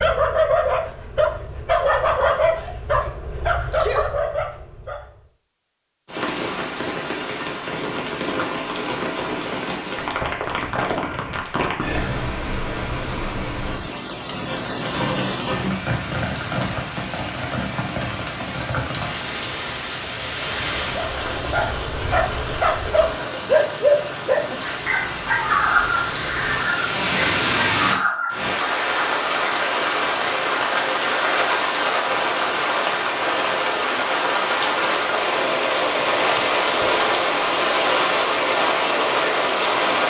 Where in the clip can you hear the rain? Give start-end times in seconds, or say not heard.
6.0-40.0.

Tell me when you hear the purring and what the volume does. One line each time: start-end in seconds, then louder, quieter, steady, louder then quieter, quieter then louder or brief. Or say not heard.
not heard.